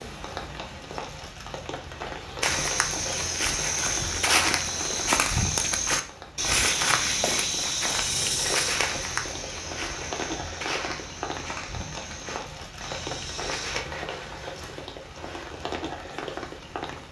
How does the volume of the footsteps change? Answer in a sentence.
The loudness of the footsteps goes down.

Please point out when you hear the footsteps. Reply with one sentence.
The footsteps can be heard from 2.4 to 13.8 s.